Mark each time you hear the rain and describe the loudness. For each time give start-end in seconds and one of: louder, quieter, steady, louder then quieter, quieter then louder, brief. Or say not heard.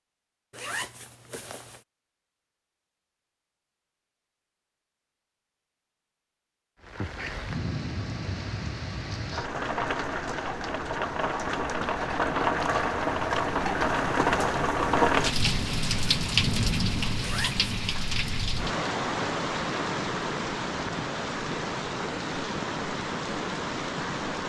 6.8-24.4 louder then quieter.